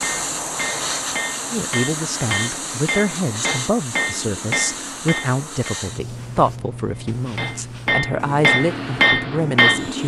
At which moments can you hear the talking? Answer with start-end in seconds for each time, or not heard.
1.5-10.0.